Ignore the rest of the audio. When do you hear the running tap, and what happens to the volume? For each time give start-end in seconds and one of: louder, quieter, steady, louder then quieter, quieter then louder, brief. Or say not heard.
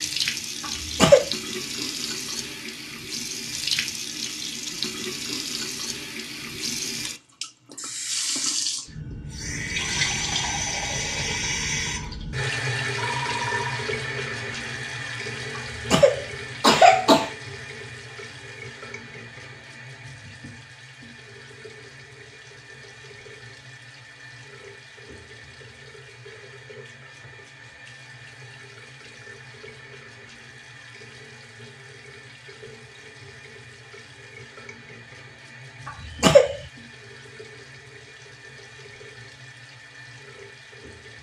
0.0-41.1 quieter.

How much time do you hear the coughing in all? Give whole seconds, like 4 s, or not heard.
3 s.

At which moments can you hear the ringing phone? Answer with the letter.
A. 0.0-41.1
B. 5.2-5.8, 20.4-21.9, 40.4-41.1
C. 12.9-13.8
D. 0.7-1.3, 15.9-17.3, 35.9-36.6
C.